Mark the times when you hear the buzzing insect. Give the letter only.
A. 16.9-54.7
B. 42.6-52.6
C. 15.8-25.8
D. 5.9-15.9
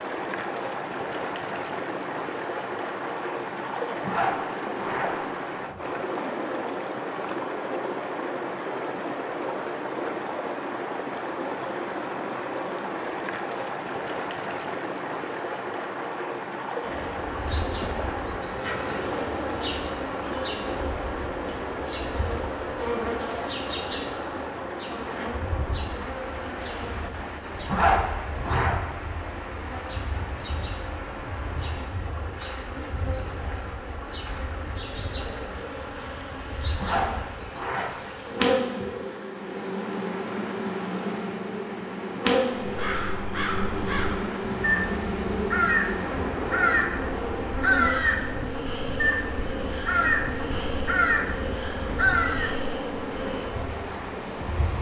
A.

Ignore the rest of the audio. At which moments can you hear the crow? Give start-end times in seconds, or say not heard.
42.6-52.6.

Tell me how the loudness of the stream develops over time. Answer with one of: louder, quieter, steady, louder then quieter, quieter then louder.
quieter.